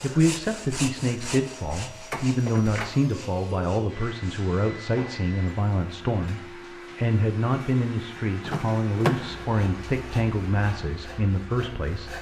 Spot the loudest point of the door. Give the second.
9 s.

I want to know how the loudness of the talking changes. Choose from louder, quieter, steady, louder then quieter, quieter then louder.
steady.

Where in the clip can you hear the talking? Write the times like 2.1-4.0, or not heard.
0.0-12.1.